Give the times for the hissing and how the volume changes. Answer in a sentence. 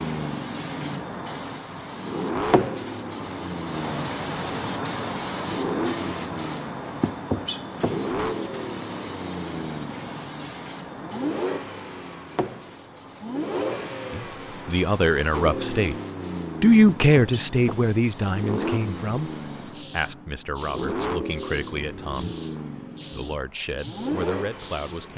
You can hear the hissing from 0.0 to 25.1 s, getting quieter.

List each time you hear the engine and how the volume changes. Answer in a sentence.
The engine can be heard from 0.0 to 25.1 s, at a steady volume.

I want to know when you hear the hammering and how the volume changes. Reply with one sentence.
You can't hear the hammering here.